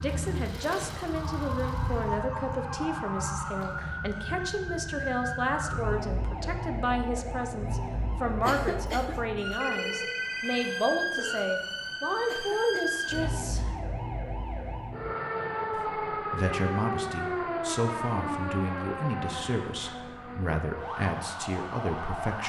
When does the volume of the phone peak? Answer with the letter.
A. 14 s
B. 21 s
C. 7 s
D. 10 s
D.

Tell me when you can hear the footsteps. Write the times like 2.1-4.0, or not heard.
not heard.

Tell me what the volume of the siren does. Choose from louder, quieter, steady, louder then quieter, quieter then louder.
steady.